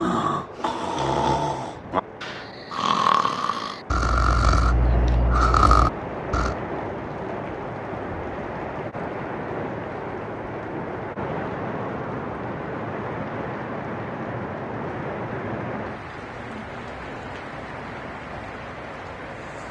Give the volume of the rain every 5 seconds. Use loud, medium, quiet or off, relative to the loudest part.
medium, loud, loud, loud.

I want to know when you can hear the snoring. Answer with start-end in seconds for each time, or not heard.
0.0-6.5.